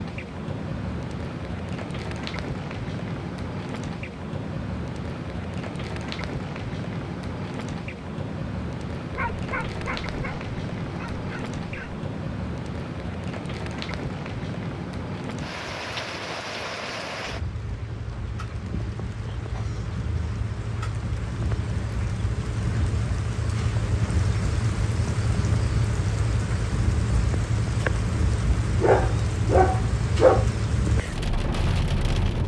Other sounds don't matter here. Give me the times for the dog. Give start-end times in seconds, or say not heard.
9.1-12.1, 28.8-30.4.